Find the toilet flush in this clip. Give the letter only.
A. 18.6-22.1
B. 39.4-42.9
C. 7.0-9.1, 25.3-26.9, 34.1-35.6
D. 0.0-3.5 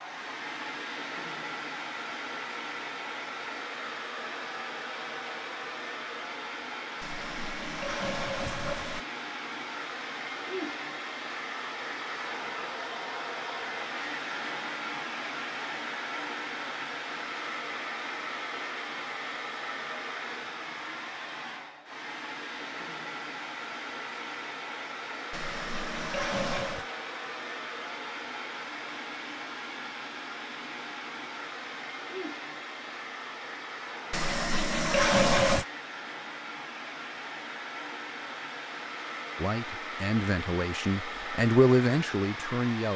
C.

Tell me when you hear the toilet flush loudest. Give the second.
35 s.